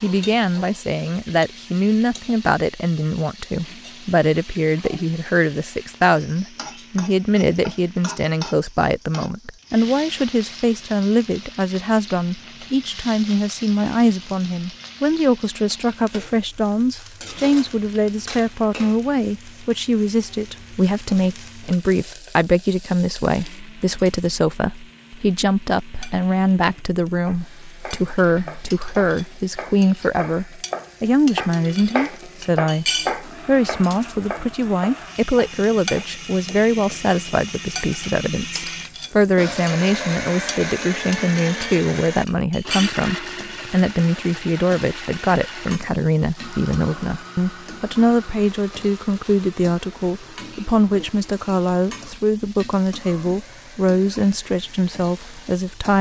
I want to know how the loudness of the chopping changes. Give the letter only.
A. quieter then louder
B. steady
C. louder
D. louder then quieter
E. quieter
D.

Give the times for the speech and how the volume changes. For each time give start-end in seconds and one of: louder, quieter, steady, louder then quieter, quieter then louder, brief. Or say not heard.
0.0-55.9 steady.